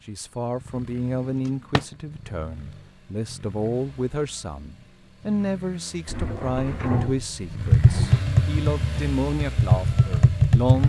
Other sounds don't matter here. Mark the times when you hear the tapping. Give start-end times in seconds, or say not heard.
7.6-10.8.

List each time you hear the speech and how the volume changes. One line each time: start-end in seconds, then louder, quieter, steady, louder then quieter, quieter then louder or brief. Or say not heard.
0.1-10.8 steady.